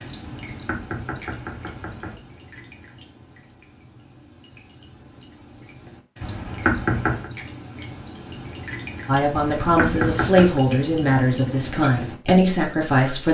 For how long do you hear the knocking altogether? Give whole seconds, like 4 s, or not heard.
4 s.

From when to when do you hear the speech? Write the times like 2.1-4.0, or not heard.
9.1-13.2.